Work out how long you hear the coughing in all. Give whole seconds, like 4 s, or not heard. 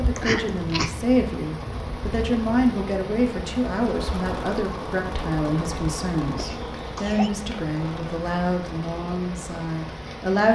2 s.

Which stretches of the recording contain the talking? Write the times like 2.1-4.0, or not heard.
0.0-10.5.